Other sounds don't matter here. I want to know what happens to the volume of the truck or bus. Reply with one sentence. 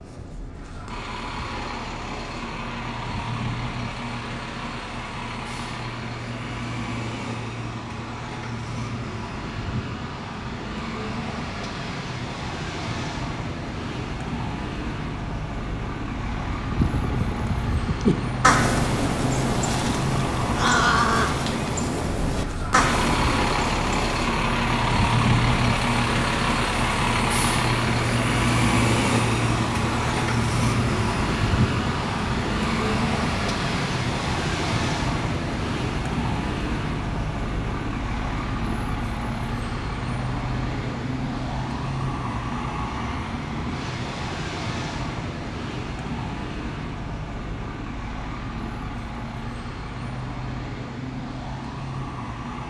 The volume of the truck or bus goes up, then down.